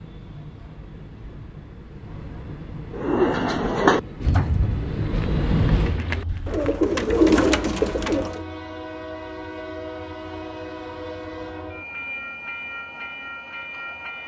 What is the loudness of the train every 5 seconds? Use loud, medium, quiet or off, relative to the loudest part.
medium, loud, medium.